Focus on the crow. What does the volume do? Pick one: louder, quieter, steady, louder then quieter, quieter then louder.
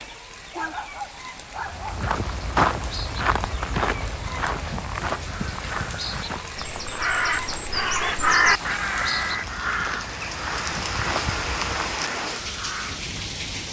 louder then quieter.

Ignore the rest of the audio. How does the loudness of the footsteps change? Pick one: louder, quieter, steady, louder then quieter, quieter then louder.
quieter then louder.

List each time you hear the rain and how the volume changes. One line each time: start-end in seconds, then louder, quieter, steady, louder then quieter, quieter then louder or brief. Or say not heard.
0.0-13.6 louder.